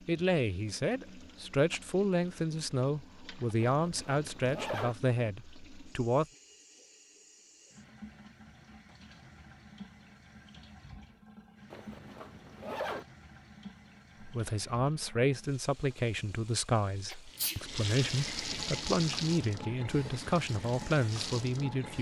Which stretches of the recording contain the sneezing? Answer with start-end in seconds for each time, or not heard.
17.1-17.6.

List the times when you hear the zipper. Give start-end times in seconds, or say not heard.
3.6-5.0, 11.7-13.1.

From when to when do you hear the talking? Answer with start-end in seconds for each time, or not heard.
0.1-6.2, 14.2-21.9.